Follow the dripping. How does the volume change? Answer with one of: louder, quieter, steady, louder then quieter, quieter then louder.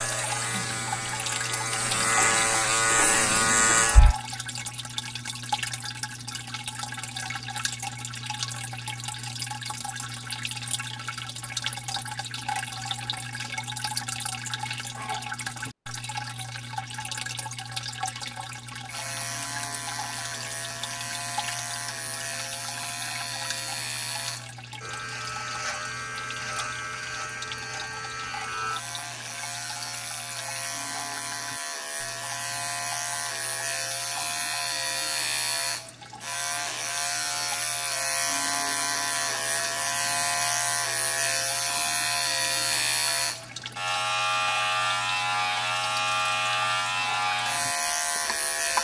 quieter.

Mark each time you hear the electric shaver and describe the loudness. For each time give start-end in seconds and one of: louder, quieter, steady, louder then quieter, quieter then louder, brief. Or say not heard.
0.0-4.2 louder
18.9-48.7 louder.